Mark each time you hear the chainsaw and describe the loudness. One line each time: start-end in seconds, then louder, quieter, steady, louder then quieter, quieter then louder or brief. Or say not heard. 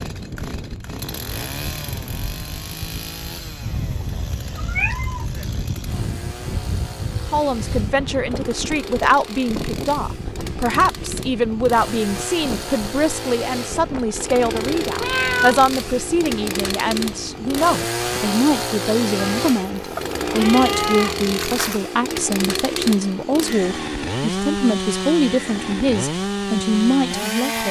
0.0-27.6 louder.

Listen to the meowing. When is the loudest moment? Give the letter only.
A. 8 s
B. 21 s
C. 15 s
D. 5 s
C.